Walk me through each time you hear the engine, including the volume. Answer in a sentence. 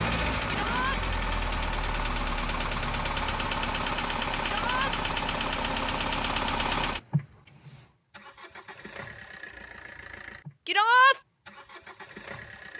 The engine can be heard from 0.0 to 12.7 s, getting quieter.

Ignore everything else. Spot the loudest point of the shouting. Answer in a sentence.
The volume of the shouting peaks at 11 seconds.